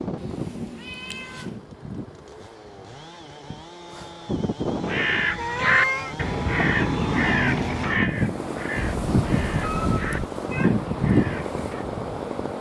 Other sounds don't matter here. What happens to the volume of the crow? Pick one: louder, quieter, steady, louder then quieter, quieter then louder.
quieter.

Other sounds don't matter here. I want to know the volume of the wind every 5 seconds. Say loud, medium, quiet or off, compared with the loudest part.
medium, loud, loud.